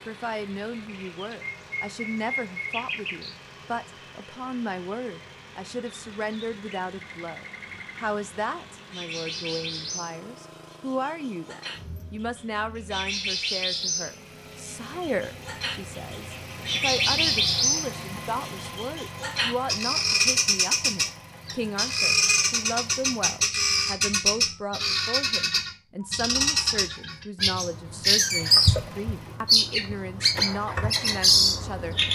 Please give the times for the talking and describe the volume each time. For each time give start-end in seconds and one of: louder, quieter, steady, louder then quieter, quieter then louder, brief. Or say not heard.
0.1-31.9 steady.